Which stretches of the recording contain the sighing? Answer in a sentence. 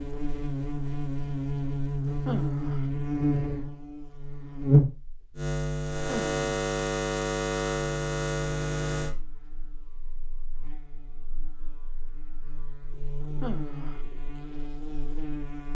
You can hear the sighing from 2.2 to 2.9 s, from 6.0 to 6.5 s and from 13.4 to 14.0 s.